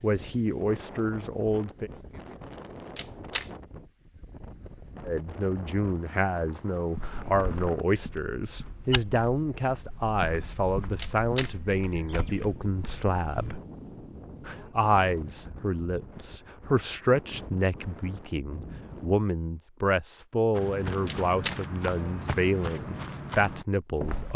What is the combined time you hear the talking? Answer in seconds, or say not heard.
20 s.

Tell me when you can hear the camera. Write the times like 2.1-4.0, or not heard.
3.0-3.5, 10.9-11.5, 21.1-21.6.